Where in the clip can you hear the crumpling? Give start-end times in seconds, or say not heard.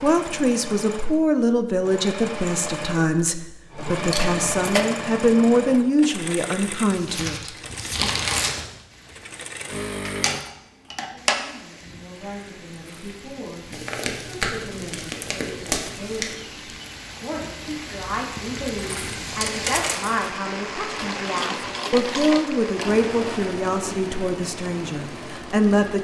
6.9-8.7, 13.7-16.4.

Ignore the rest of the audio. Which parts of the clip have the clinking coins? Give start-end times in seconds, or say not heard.
4.1-4.8, 10.0-11.3, 18.8-20.3.